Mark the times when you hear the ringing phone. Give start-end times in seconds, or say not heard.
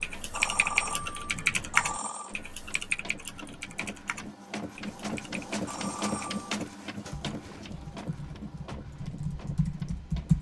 0.3-2.4, 5.7-6.5.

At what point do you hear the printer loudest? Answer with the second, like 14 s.
6 s.